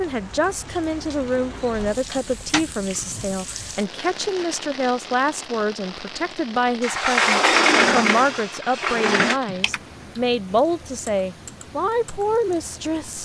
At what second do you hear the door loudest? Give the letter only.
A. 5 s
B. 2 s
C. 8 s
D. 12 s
C.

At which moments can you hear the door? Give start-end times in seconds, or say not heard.
0.7-2.6, 6.8-9.4.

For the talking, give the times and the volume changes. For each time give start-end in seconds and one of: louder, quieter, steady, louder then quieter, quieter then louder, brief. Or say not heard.
0.0-13.2 steady.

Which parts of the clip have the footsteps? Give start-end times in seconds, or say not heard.
not heard.